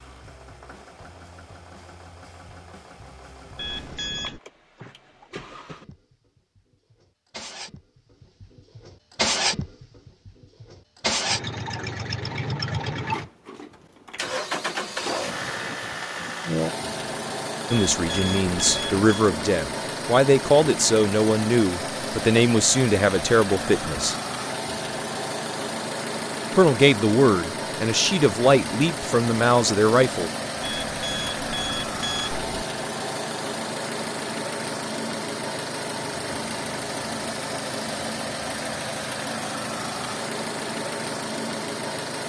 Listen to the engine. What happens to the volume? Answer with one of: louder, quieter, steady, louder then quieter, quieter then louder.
louder.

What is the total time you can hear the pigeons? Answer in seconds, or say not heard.
not heard.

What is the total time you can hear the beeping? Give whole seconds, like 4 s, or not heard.
4 s.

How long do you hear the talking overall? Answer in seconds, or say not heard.
10 s.